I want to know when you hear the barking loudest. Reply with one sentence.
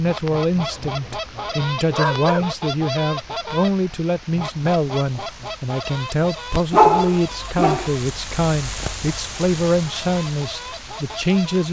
The loudest moment of the barking is at 7 seconds.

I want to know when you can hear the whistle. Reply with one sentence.
You can't hear the whistle here.